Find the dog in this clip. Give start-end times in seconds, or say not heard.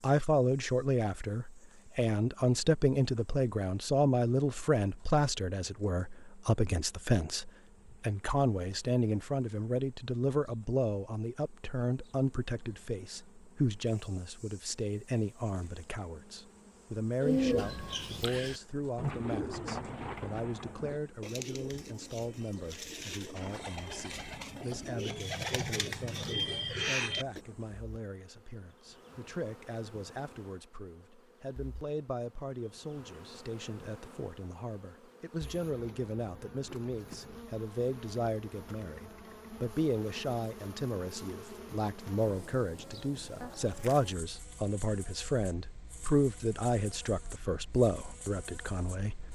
not heard.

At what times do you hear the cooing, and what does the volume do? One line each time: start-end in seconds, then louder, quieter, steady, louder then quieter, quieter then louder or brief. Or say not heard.
17.2-27.4 quieter then louder.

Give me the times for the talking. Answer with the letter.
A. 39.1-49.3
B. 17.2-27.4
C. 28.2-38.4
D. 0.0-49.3
D.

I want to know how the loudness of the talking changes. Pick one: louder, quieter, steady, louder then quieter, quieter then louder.
quieter then louder.